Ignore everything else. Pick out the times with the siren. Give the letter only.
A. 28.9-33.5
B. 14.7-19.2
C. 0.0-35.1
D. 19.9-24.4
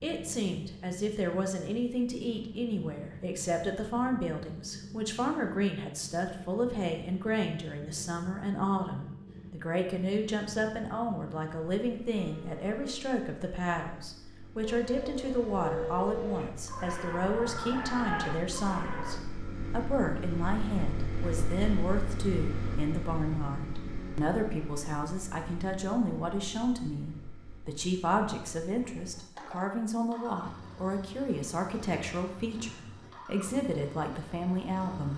B.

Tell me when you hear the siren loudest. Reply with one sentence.
The volume of the siren peaks at 16 seconds.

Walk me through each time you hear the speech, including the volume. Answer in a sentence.
The speech can be heard from 0.0 to 35.1 s, at a steady volume.